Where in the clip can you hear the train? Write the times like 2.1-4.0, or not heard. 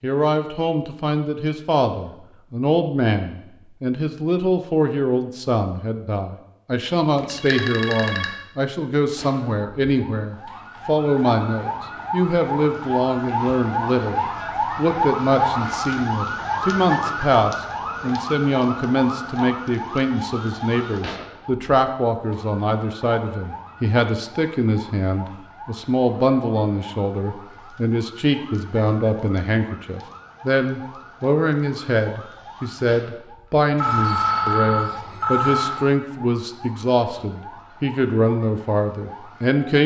not heard.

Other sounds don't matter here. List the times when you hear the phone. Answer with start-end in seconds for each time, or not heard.
7.2-8.3, 33.8-35.9.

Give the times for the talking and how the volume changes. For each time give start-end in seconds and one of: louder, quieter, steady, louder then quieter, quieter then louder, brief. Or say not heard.
0.0-39.8 steady.